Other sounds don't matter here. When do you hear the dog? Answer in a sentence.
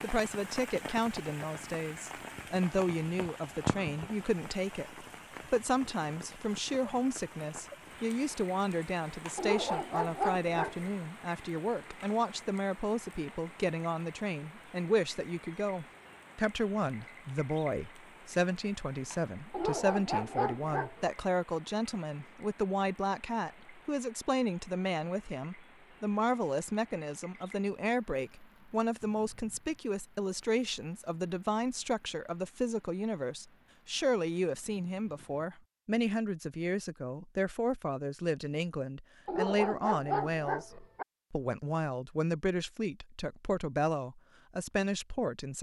You can hear the dog from 9.3 to 10.9 s, from 19.5 to 21.1 s and from 39.2 to 41.0 s.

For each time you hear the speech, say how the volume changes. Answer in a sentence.
You can hear the speech from 0.0 to 45.5 s, at a steady volume.